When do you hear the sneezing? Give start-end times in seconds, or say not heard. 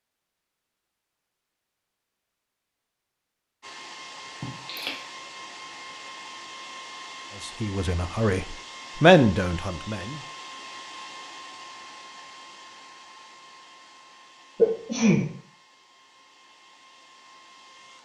4.4-5.0, 14.6-15.2.